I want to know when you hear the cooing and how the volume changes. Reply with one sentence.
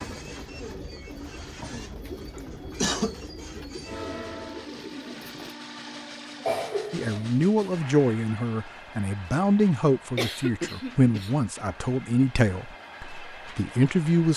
The cooing can be heard from 0.0 to 5.5 s, at a steady volume.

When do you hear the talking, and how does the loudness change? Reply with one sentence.
The talking can be heard from 6.9 to 14.3 s, at a steady volume.